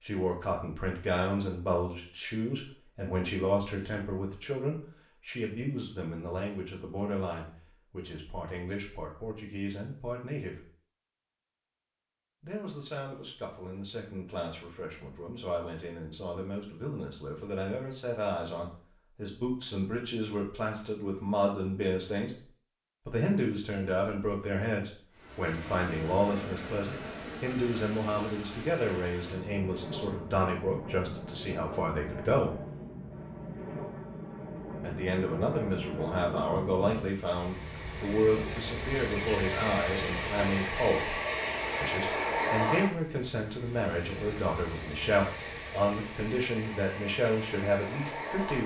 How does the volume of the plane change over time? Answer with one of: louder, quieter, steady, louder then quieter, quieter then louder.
louder then quieter.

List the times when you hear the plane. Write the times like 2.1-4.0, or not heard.
25.1-48.6.